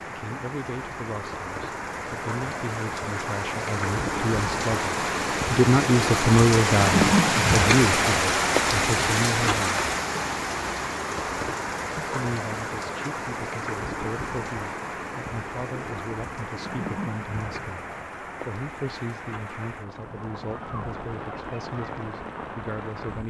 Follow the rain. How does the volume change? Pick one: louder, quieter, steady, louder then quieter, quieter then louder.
louder then quieter.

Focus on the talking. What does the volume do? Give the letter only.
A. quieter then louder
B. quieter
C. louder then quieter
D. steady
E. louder
C.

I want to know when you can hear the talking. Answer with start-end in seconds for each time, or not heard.
0.1-9.8, 11.9-23.2.